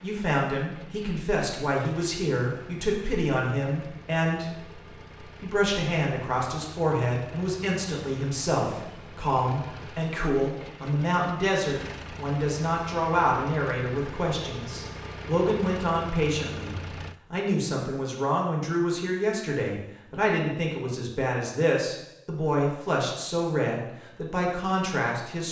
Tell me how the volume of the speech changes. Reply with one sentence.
The volume of the speech stays about the same.